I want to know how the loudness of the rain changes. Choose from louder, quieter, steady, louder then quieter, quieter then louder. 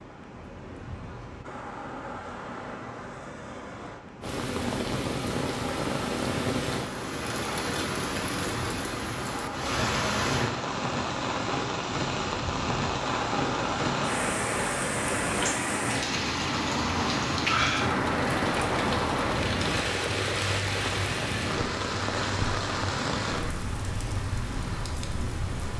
steady.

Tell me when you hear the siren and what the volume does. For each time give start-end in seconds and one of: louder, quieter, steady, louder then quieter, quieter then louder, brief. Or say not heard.
not heard.